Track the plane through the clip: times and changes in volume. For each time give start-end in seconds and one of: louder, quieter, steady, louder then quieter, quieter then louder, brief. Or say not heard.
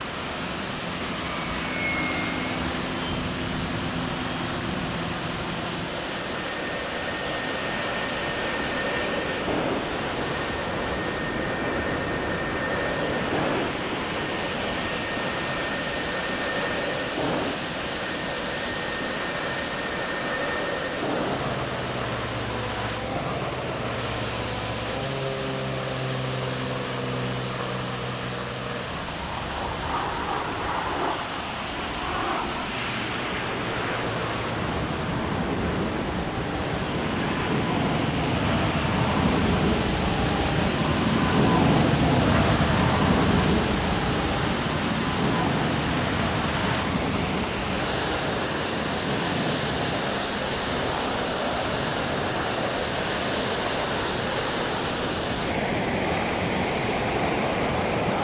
0.0-58.2 louder then quieter.